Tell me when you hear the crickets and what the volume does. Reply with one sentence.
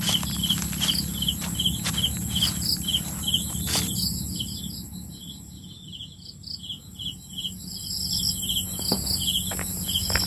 You can hear the crickets from 0.0 to 10.2 s, getting quieter then louder.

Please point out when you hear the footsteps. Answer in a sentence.
You can hear the footsteps from 0.0 to 3.9 s and from 8.7 to 10.2 s.